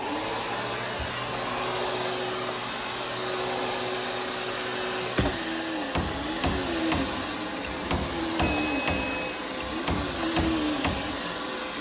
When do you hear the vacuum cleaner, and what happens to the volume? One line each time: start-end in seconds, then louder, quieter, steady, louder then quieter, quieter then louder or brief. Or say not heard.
0.0-11.7 steady.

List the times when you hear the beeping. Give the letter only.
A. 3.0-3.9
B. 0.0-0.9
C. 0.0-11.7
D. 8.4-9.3
D.